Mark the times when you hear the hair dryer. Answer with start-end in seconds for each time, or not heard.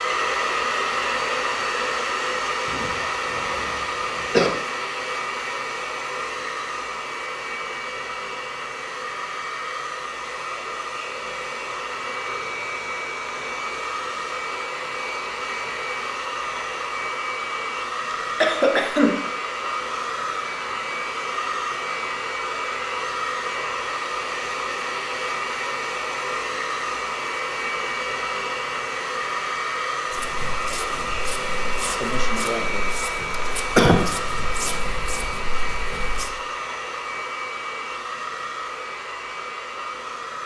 0.0-40.4.